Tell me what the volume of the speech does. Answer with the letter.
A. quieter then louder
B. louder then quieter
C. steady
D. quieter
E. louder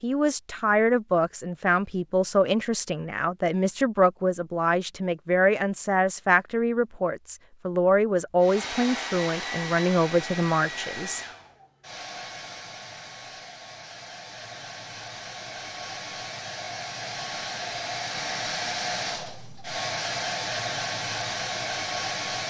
C.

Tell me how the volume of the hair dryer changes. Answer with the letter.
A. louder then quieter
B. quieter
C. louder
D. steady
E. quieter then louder
E.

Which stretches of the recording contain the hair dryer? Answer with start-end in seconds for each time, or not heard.
8.4-22.4.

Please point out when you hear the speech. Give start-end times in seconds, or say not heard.
0.0-11.2.